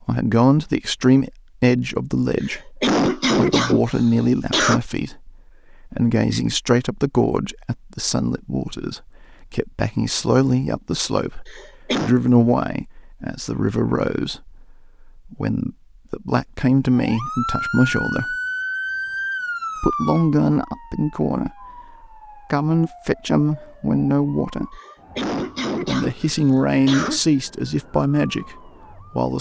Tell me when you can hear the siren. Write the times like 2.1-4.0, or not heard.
16.9-29.3.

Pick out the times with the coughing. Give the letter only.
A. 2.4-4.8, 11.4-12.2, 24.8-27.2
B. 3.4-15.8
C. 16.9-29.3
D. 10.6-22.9
A.